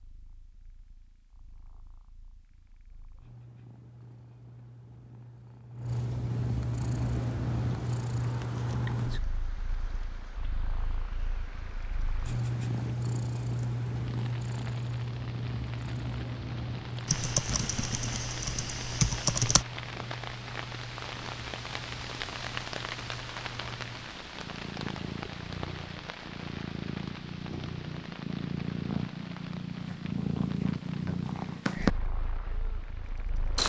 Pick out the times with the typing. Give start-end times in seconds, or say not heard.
17.1-19.6.